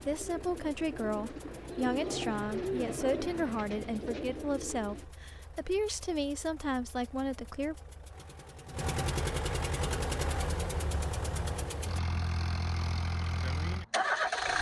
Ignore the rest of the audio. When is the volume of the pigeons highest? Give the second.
3 s.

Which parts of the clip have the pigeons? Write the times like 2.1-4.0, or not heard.
0.0-5.0.